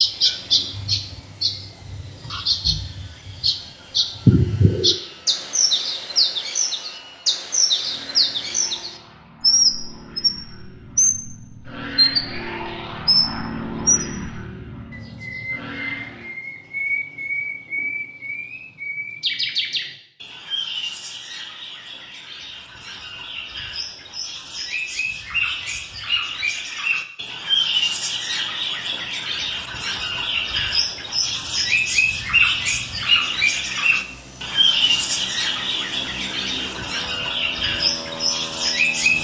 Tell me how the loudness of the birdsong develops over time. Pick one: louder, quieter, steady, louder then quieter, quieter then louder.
quieter then louder.